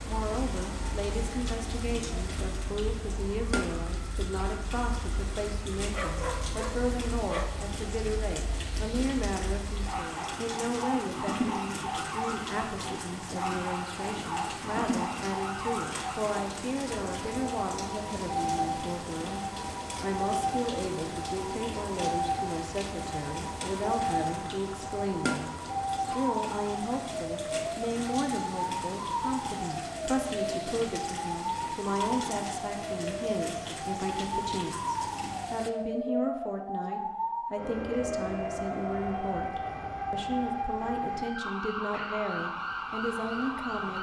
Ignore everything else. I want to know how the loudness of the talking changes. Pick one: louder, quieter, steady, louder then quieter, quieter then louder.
steady.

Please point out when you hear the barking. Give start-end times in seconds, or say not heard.
5.9-7.5.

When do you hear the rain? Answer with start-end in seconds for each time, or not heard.
0.0-35.7.